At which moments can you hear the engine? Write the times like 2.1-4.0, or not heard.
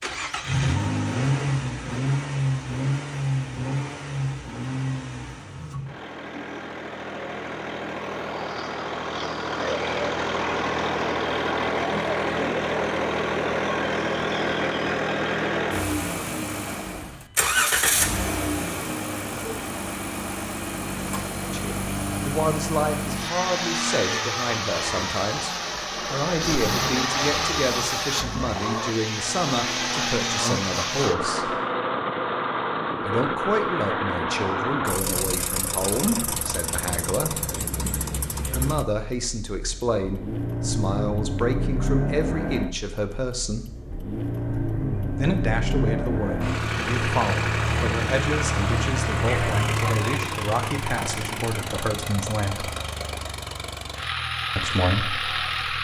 0.0-55.7.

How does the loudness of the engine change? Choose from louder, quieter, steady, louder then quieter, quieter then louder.
steady.